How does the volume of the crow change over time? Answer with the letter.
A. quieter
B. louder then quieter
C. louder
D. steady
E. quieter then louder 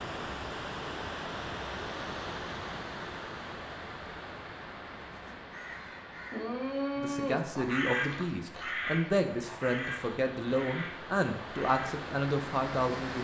B.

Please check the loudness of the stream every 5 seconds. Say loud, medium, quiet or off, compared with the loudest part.
loud, medium, loud.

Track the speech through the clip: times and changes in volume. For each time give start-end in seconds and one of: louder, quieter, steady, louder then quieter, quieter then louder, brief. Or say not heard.
7.0-13.1 steady.